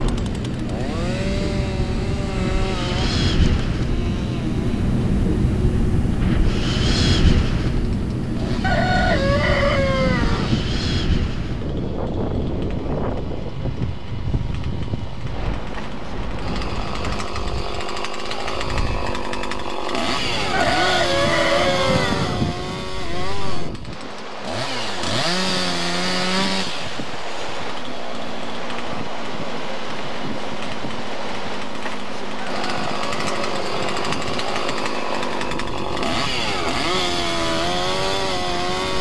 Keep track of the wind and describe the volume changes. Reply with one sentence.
The volume of the wind goes down.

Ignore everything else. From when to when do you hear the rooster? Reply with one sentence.
The rooster can be heard from 8.6 to 10.7 s, from 20.5 to 22.6 s and from 32.5 to 34.4 s.